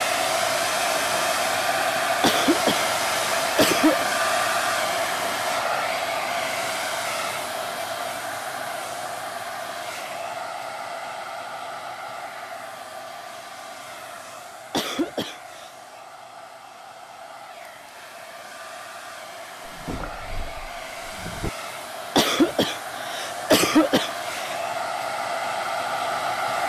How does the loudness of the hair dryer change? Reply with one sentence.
The volume of the hair dryer goes down, then up.